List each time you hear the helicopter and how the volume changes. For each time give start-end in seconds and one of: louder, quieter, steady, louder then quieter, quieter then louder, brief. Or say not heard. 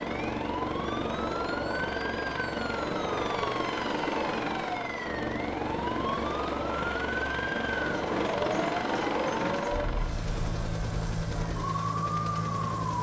0.0-12.9 steady.